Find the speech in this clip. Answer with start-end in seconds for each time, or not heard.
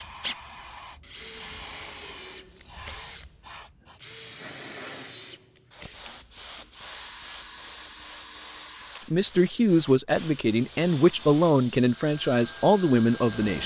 9.1-13.6.